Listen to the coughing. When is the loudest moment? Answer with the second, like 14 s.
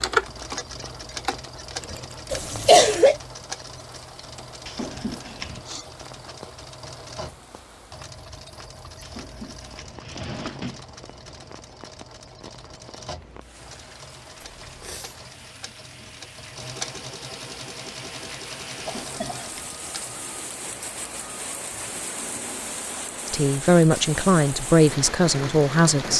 3 s.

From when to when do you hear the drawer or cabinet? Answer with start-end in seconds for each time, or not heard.
4.7-5.7, 9.0-10.8, 18.8-19.8.